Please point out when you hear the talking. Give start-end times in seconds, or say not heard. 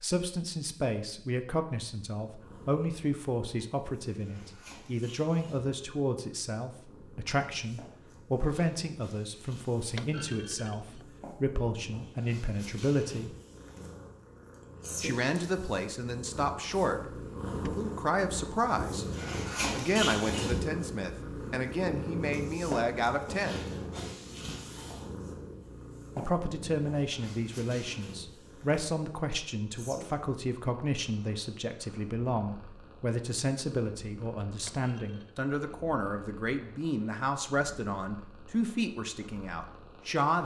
0.0-13.3, 15.0-19.1, 19.7-23.7, 26.1-40.4.